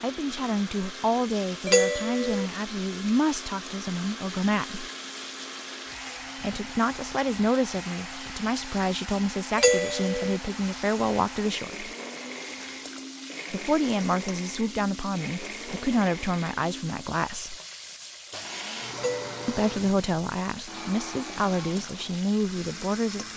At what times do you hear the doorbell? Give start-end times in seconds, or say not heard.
1.6-2.5, 9.6-10.4, 18.9-19.6.